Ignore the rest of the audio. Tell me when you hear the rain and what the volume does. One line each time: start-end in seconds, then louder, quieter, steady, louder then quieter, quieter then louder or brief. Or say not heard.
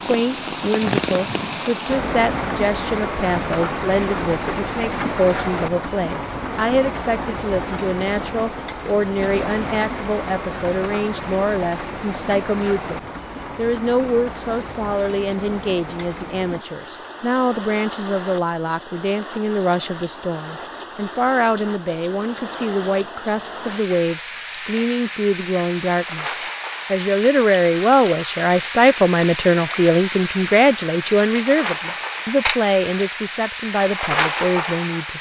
0.0-35.1 quieter then louder.